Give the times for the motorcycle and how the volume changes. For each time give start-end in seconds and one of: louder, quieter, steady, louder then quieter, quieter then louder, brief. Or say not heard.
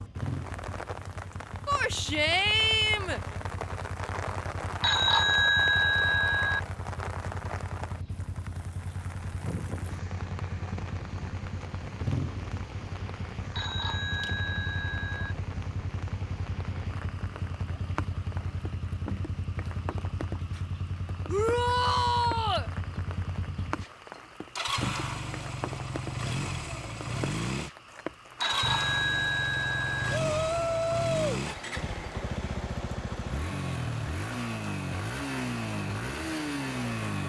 0.0-37.2 louder.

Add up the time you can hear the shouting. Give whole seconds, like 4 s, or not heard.
4 s.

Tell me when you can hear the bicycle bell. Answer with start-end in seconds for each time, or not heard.
4.8-6.6, 13.5-15.3, 28.4-30.2.